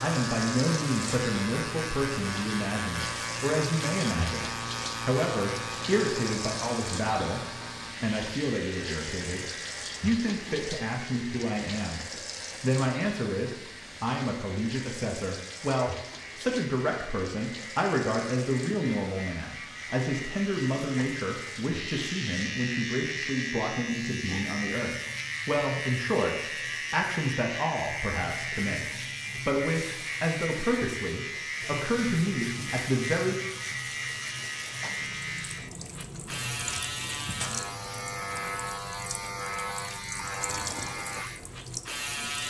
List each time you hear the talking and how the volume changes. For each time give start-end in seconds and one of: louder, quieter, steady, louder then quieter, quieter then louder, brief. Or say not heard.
0.0-12.0 steady
12.6-33.4 steady.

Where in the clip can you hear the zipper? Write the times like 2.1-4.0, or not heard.
not heard.